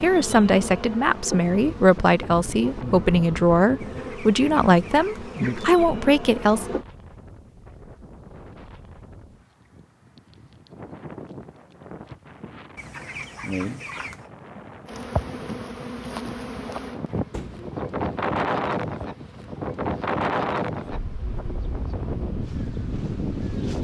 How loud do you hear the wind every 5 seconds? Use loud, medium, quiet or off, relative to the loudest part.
medium, quiet, quiet, loud, loud.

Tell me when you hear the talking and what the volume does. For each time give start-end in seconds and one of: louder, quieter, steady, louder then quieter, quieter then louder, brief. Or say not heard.
0.0-6.7 steady.